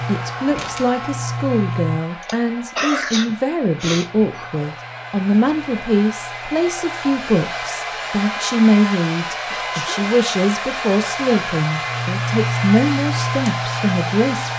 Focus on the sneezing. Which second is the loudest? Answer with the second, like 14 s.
3 s.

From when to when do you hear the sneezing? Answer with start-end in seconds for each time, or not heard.
2.2-4.7, 9.4-10.1.